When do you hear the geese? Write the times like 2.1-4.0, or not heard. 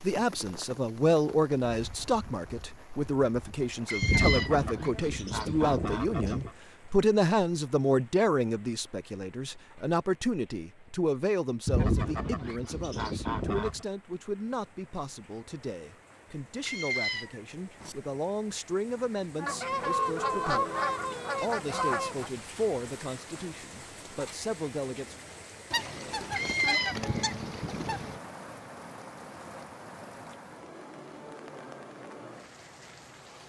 4.0-6.5, 11.7-13.8, 19.4-22.3, 25.7-28.2.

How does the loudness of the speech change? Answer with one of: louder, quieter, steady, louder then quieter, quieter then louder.
quieter.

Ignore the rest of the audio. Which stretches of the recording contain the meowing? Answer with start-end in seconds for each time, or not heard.
3.9-4.6, 16.6-17.9, 26.3-27.1.